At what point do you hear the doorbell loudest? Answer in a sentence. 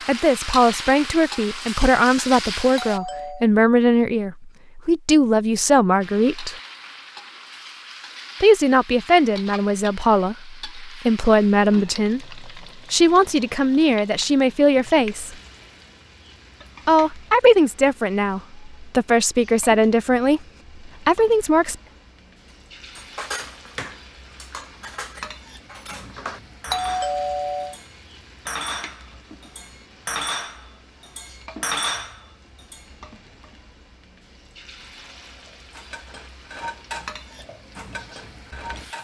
The loudest moment of the doorbell is at 27 seconds.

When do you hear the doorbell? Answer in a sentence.
The doorbell can be heard from 2.8 to 3.5 s and from 26.7 to 27.8 s.